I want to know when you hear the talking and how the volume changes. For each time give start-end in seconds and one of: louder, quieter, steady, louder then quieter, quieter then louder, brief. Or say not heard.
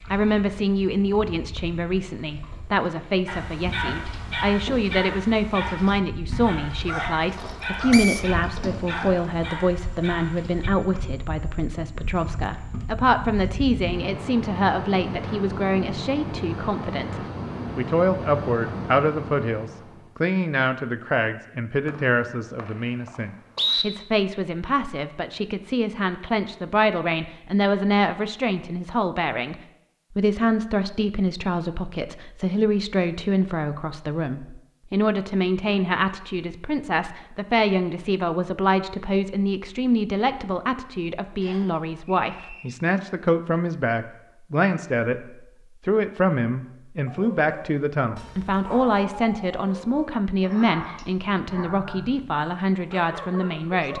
0.1-29.6 steady
30.1-53.9 steady.